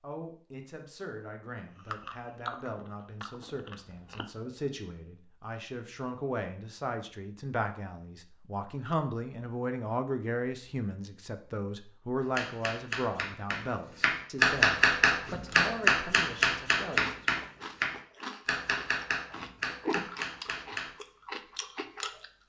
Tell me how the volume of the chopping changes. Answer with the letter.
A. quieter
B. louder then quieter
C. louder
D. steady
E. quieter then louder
B.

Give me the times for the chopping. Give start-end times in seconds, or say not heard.
12.2-20.9.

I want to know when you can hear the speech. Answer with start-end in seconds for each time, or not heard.
0.0-17.4.